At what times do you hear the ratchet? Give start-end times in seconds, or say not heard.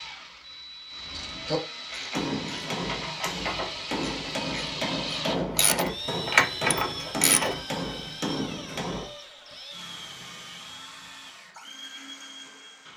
0.9-7.5.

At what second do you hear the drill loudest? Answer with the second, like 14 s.
5 s.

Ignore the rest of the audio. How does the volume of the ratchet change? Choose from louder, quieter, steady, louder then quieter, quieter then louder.
quieter then louder.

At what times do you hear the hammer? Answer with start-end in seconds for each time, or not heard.
2.1-9.1.